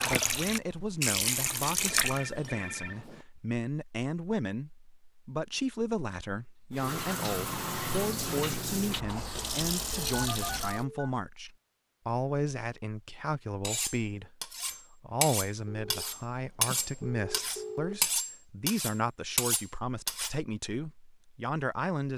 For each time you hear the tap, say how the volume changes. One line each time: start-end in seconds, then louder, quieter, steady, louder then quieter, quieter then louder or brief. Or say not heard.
0.0-2.2 brief
6.7-10.8 steady.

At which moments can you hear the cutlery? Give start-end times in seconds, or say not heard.
13.6-20.4.